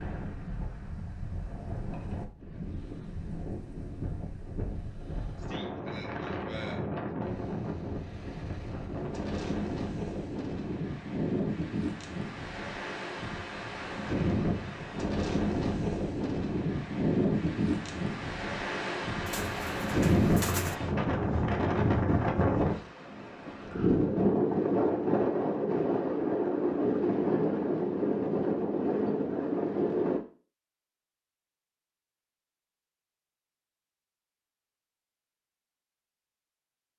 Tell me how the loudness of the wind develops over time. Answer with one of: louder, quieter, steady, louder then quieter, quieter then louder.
louder.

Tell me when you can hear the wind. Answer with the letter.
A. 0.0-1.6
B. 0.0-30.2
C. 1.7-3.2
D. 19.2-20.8
B.